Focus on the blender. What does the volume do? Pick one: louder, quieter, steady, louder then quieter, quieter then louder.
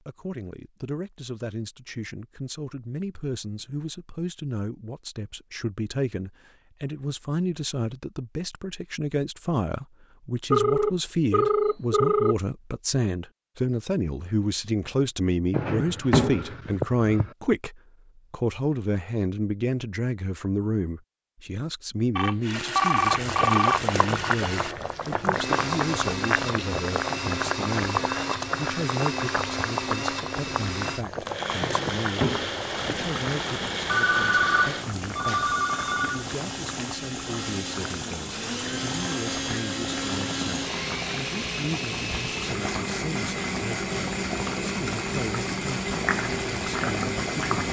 steady.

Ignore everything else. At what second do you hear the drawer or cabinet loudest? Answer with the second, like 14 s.
16 s.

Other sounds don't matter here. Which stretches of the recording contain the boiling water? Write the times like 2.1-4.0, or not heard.
22.9-47.6.